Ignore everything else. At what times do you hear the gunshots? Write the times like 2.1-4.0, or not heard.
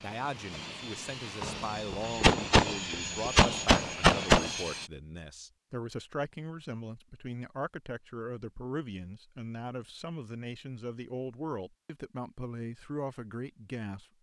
1.4-4.5.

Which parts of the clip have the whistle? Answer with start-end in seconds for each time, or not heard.
not heard.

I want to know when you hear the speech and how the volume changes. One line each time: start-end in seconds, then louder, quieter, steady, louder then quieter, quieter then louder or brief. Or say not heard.
0.0-14.1 steady.